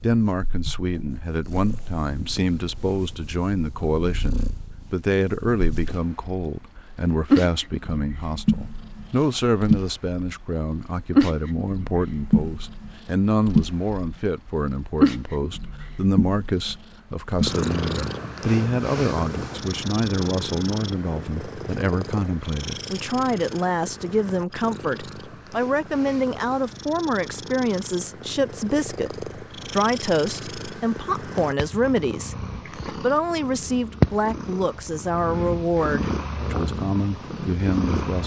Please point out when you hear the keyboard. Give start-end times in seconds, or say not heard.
not heard.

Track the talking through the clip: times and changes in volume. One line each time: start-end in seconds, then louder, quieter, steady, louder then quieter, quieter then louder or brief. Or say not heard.
0.0-38.2 steady.